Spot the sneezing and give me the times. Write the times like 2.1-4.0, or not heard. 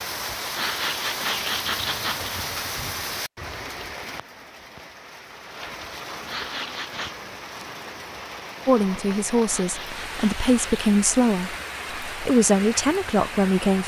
0.5-2.3, 6.2-7.2, 9.4-10.9.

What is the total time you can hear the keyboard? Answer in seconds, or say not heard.
not heard.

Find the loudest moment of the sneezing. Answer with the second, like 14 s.
1 s.